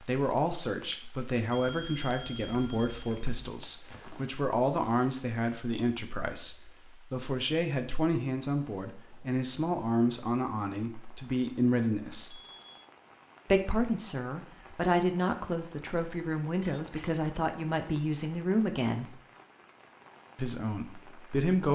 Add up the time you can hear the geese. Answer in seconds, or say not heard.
not heard.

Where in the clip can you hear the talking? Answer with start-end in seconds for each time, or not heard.
0.0-12.4, 13.5-19.2, 20.4-21.7.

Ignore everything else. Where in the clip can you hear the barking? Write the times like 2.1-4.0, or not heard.
not heard.